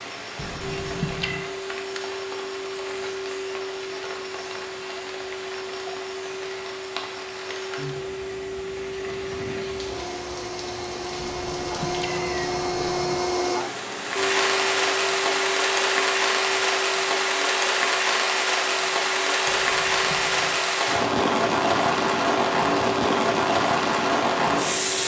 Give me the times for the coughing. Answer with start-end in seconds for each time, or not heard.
not heard.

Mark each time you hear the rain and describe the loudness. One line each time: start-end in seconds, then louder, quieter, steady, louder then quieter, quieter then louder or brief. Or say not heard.
0.0-25.0 louder.